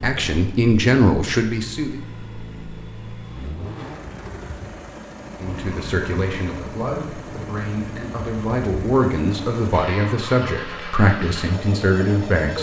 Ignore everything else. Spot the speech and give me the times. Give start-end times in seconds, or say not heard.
0.0-1.9, 5.4-12.5.